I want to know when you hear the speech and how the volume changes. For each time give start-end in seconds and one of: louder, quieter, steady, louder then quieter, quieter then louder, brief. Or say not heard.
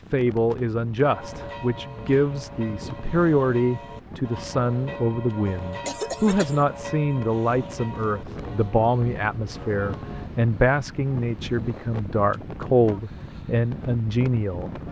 0.1-14.7 steady.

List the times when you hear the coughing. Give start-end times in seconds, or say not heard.
5.8-6.7.